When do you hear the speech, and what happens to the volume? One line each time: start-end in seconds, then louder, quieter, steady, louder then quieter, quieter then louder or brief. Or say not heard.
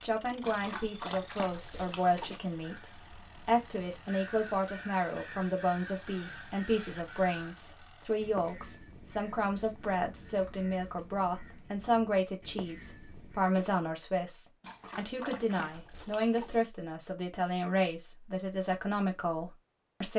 0.0-20.1 steady.